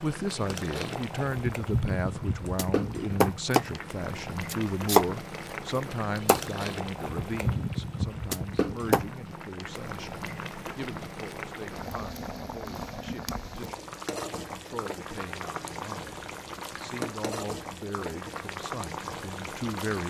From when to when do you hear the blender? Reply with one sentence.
The blender can't be heard in this clip.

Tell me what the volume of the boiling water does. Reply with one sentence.
The volume of the boiling water stays about the same.